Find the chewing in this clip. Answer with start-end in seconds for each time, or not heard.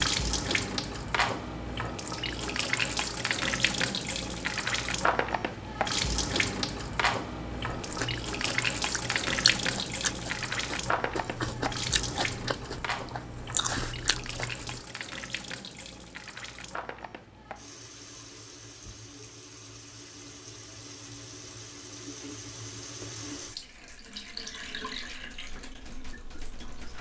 7.8-14.8.